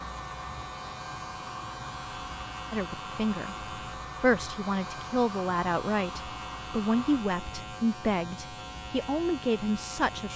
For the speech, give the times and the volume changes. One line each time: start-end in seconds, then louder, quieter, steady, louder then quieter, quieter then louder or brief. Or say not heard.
2.7-10.3 steady.